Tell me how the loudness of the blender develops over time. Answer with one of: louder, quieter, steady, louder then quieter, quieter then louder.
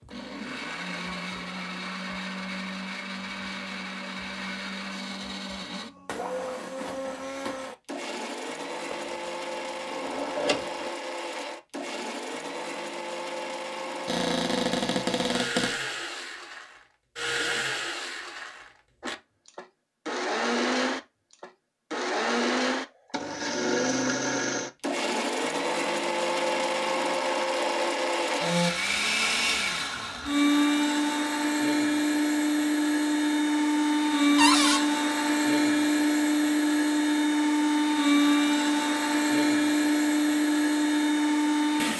louder.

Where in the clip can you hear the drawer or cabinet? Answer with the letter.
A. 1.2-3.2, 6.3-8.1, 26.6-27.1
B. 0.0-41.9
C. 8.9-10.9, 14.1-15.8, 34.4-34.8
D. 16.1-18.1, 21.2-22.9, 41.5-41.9
C.